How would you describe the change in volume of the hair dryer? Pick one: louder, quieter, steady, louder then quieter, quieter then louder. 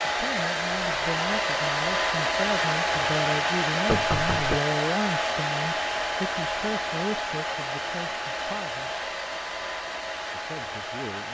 quieter.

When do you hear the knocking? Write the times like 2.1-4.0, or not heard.
3.9-4.6.